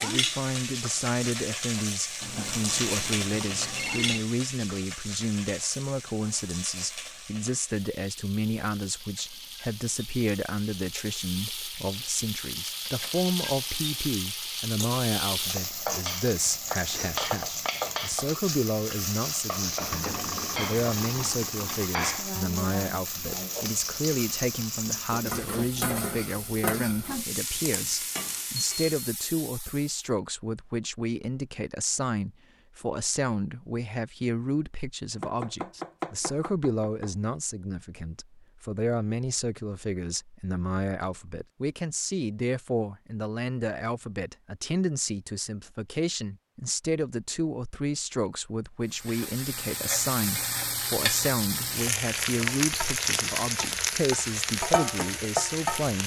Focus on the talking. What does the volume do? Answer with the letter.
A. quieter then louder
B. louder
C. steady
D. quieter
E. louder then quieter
C.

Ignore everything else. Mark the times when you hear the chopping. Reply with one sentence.
You can hear the chopping from 35.1 to 37.1 s.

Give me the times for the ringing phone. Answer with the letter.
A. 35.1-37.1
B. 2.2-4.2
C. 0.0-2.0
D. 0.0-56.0
B.